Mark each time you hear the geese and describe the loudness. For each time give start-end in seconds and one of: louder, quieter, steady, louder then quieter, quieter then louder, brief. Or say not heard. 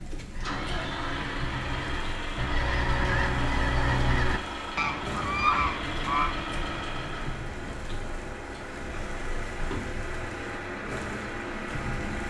0.3-6.3 louder.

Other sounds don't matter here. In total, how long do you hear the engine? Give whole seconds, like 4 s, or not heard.
12 s.